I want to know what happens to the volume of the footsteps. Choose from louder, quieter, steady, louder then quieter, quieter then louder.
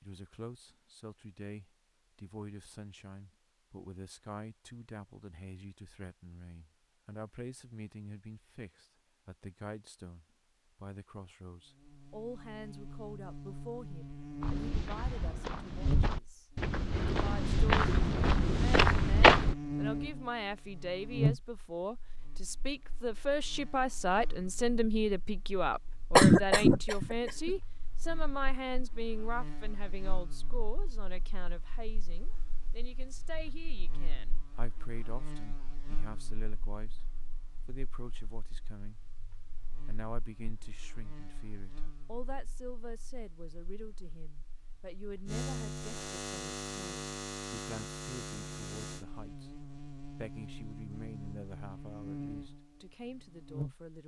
louder.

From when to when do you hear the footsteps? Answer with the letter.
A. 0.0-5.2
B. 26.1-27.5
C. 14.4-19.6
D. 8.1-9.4
C.